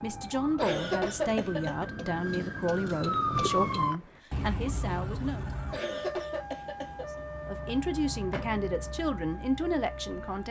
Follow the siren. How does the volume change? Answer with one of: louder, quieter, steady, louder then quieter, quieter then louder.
louder then quieter.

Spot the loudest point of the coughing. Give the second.
1 s.